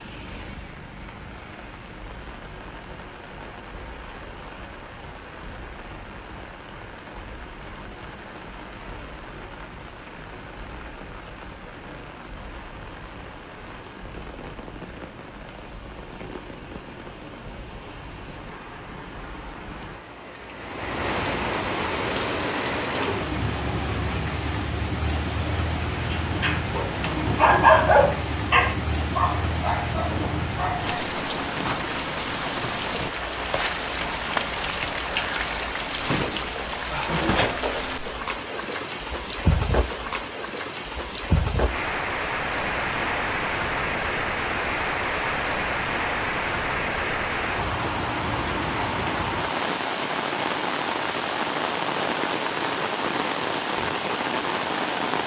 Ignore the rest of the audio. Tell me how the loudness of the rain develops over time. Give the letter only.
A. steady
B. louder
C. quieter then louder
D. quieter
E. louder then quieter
B.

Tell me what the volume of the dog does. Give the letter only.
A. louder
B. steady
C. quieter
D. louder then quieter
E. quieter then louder
D.